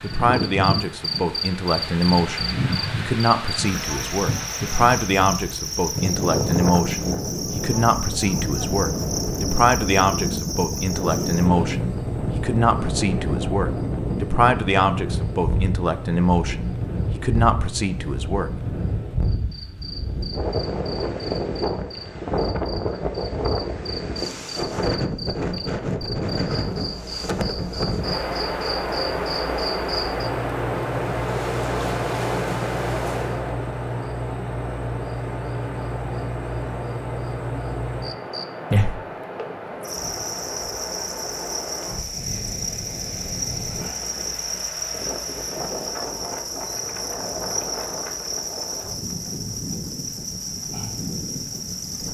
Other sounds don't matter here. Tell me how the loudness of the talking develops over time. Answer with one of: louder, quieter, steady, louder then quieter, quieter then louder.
steady.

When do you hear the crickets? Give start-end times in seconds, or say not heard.
0.0-52.0.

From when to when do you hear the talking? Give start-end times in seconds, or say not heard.
0.0-18.5.